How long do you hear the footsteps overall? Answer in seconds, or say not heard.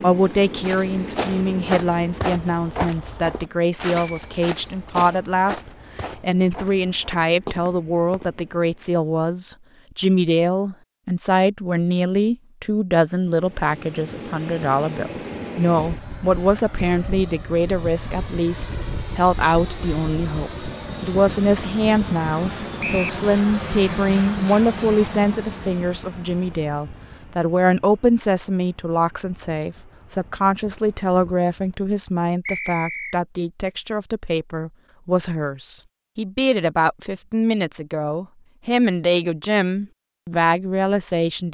8 s.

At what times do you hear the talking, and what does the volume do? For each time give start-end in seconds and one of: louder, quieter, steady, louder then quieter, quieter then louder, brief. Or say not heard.
0.0-41.4 steady.